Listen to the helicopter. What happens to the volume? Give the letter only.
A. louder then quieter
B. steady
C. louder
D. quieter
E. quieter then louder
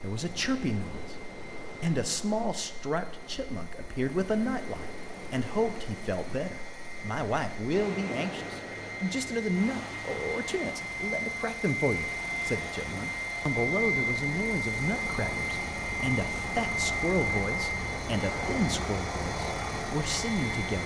C.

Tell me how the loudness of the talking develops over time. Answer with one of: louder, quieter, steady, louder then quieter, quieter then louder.
steady.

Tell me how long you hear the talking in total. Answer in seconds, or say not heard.
21 s.